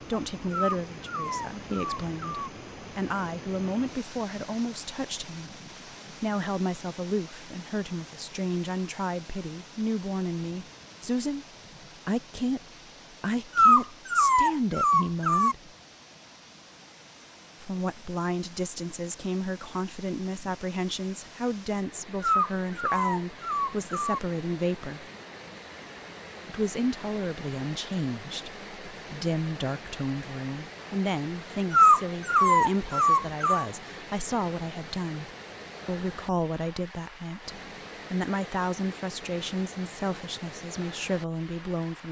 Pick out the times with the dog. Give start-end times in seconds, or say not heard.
0.5-2.5, 13.6-15.6, 22.2-24.2, 31.7-33.6.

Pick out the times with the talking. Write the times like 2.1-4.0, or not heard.
0.1-5.5, 6.2-11.4, 12.1-15.7, 17.6-25.1, 26.4-42.0.